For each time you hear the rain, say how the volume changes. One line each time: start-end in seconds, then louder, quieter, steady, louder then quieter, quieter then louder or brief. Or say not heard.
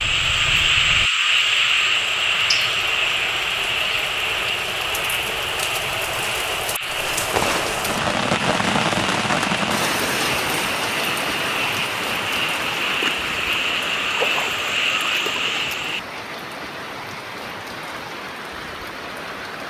0.0-19.6 louder then quieter.